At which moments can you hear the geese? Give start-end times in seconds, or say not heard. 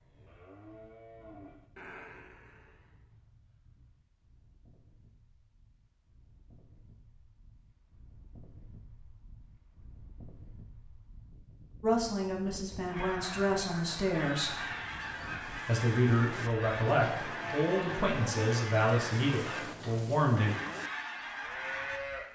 12.8-22.0.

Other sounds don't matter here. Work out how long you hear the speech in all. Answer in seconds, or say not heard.
8 s.